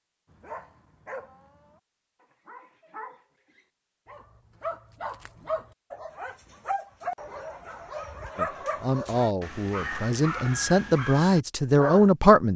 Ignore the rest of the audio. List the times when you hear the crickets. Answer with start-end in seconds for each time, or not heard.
not heard.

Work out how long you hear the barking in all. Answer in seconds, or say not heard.
12 s.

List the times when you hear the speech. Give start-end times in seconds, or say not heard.
8.3-12.5.